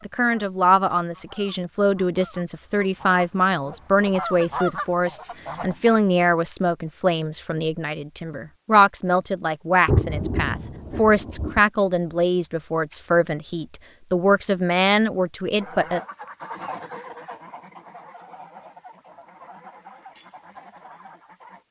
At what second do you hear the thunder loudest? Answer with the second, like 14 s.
10 s.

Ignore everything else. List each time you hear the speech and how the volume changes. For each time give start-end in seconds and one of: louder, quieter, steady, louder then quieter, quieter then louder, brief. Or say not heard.
0.1-16.0 steady.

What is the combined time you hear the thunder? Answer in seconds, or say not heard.
2 s.